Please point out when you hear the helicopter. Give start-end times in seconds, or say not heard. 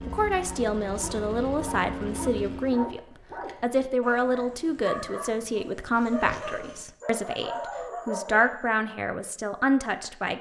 0.0-3.0.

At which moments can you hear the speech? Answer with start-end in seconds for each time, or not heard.
0.0-10.3.